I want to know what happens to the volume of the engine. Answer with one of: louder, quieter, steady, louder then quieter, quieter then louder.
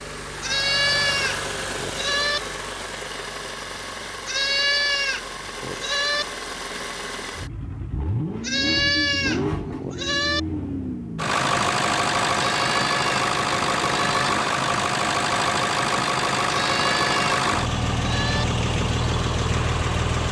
louder.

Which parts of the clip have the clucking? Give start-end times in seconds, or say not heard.
not heard.